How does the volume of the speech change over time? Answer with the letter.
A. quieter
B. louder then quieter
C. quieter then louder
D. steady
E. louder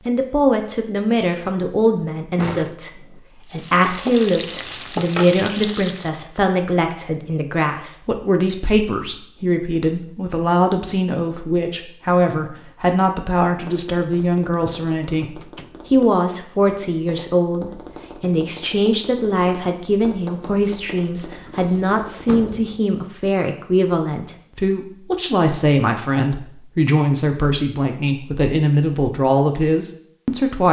D.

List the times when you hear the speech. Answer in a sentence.
The speech can be heard from 0.1 to 30.6 s.